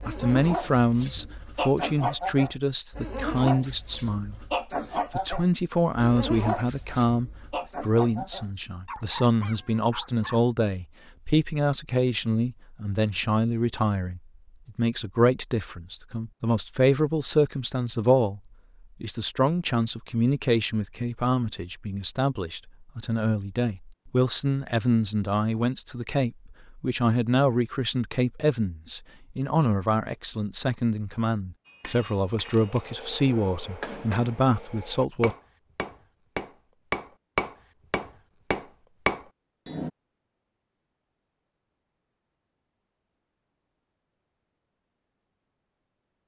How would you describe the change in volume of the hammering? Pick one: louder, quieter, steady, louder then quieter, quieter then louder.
louder.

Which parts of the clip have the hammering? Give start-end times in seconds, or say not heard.
31.6-39.9.